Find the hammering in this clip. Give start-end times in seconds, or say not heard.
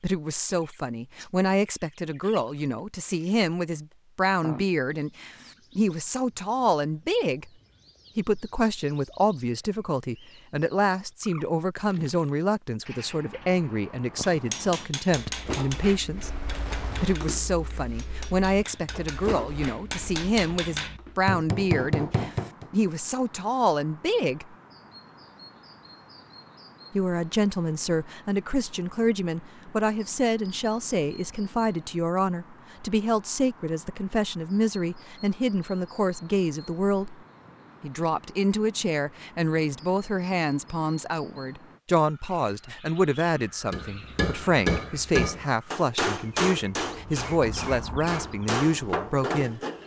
14.2-22.7, 43.7-49.8.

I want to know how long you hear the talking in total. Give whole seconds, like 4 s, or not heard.
45 s.